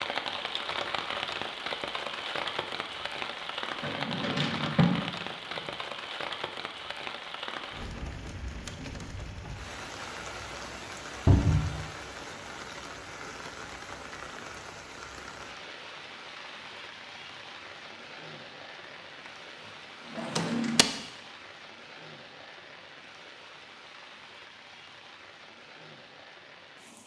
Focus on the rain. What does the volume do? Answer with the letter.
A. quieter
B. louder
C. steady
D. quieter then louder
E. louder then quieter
A.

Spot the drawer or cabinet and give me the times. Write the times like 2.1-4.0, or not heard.
3.8-5.0, 11.2-11.7, 20.1-20.9.